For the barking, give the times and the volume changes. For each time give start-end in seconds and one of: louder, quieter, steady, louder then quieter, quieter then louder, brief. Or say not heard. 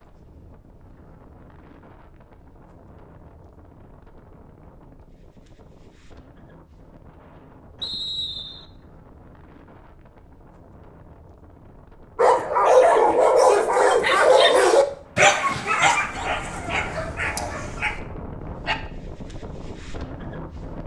12.2-18.8 quieter.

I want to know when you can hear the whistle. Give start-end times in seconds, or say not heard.
7.8-8.7.